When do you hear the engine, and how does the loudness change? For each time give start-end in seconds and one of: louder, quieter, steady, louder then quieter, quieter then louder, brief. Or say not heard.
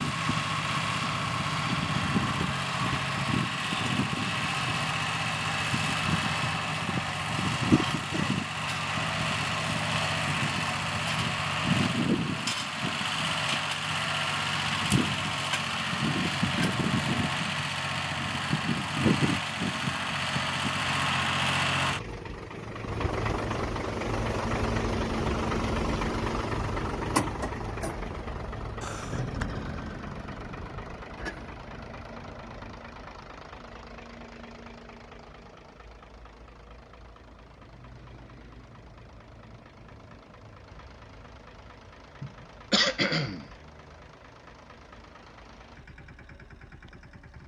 0.0-47.4 quieter.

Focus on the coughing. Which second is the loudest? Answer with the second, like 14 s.
43 s.